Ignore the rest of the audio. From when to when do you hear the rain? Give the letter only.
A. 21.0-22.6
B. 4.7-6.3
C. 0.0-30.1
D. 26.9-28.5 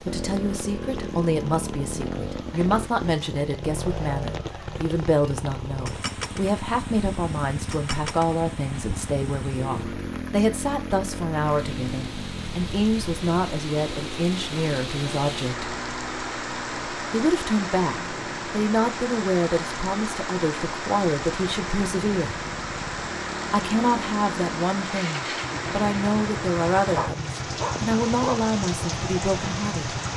C.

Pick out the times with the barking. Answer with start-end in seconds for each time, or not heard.
26.9-28.5.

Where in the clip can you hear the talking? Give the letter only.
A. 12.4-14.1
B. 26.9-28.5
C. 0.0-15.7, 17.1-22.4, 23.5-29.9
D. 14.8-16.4
C.